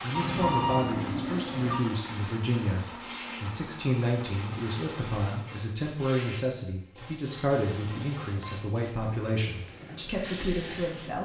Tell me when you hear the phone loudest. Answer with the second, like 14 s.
1 s.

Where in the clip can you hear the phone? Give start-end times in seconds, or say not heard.
0.1-1.8, 7.6-8.6.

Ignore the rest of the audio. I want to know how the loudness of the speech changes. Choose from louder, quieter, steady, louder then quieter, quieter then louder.
steady.